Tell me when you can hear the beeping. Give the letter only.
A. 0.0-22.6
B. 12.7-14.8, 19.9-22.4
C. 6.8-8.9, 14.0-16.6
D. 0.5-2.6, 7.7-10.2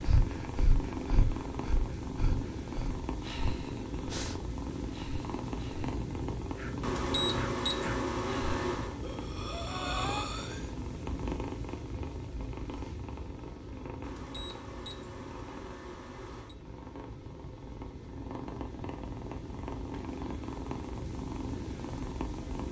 C.